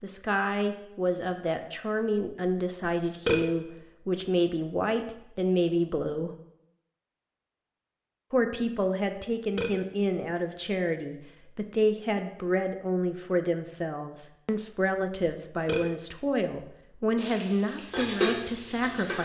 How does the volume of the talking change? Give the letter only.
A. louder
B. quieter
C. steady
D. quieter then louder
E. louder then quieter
C.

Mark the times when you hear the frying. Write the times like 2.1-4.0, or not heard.
17.1-19.1.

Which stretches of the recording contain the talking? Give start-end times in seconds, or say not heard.
0.0-6.3, 8.3-19.1.